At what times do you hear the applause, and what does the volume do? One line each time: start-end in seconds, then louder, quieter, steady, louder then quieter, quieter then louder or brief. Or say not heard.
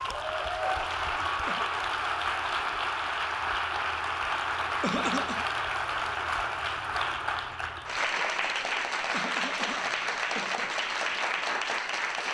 0.0-12.2 steady.